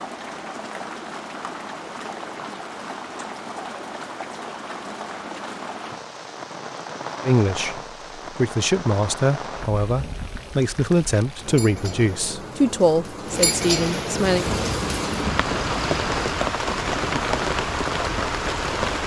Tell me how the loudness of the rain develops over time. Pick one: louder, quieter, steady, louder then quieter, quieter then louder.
louder.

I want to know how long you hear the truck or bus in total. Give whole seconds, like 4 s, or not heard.
2 s.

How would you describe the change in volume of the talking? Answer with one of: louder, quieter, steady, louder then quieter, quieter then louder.
steady.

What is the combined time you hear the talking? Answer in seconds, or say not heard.
7 s.